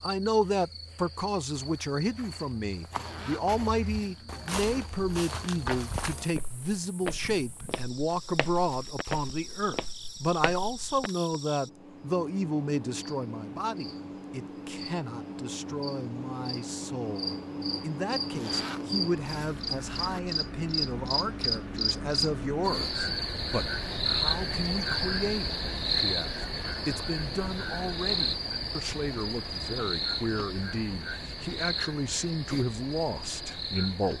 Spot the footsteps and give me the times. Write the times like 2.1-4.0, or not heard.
1.6-11.1.